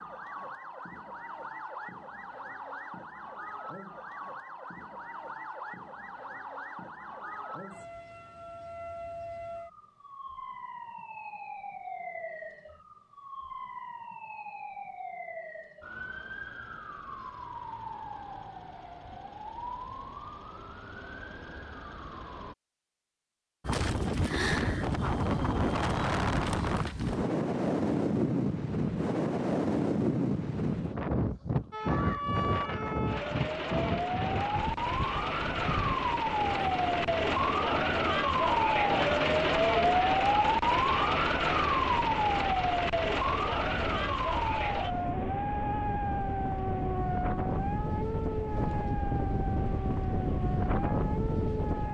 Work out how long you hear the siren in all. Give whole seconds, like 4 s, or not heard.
43 s.